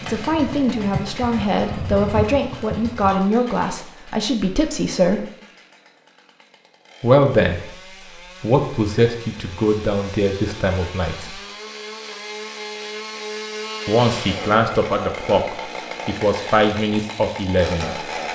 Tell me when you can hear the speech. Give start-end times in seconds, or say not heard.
0.0-5.2, 7.0-7.8, 8.4-11.4, 13.8-18.3.